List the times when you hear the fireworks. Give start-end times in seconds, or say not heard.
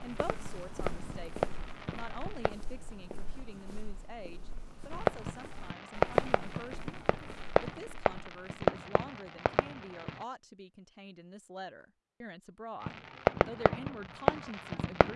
0.0-2.5, 4.9-10.2, 12.8-15.1.